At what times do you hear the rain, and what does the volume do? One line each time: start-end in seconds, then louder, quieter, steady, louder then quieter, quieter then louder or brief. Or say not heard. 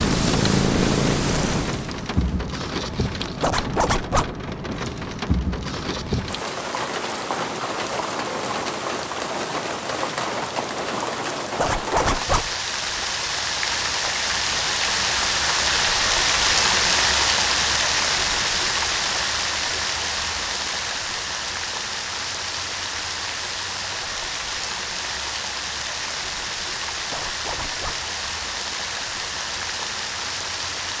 0.0-30.9 louder then quieter.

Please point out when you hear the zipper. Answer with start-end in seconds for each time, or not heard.
3.4-4.3, 11.6-12.5, 27.1-28.1.